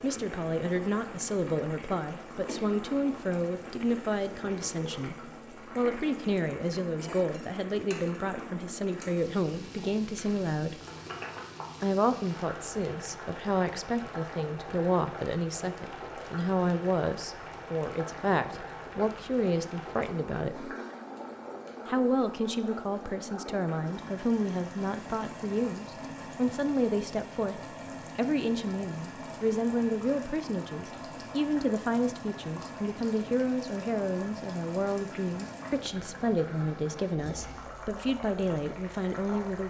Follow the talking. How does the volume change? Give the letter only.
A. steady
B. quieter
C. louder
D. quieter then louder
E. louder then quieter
A.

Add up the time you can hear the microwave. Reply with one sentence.
The microwave can't be heard in this clip.